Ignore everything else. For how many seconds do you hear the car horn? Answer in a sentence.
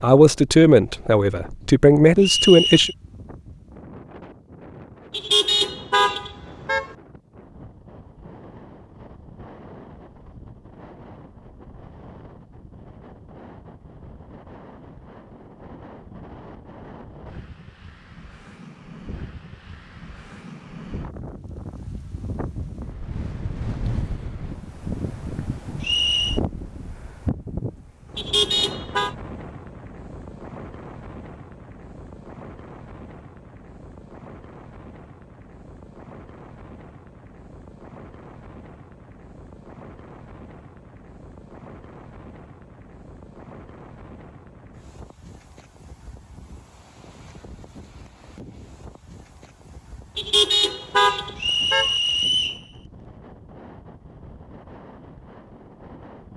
The car horn can be heard for 5 seconds in total.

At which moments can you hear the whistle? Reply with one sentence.
The whistle can be heard from 2.2 to 3.0 s, from 25.8 to 26.4 s and from 51.4 to 52.6 s.